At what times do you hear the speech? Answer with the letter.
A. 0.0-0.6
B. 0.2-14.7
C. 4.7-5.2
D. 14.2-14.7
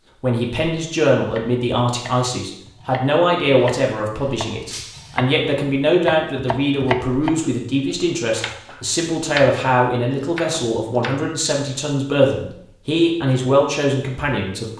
B.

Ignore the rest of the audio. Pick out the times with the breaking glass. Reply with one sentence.
The breaking glass can be heard from 4.7 to 5.2 s.